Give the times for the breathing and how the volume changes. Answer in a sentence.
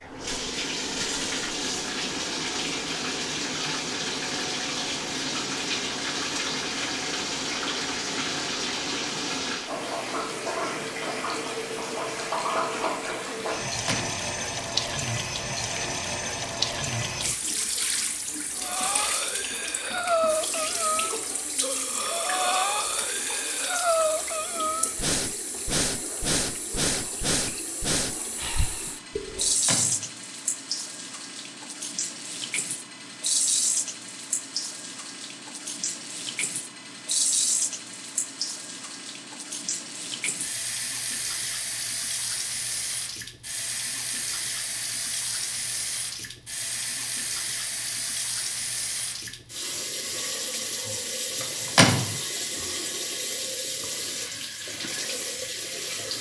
You can hear the breathing from 18.6 to 29.6 s, at a steady volume.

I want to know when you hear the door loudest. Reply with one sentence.
The loudest moment of the door is at 52 seconds.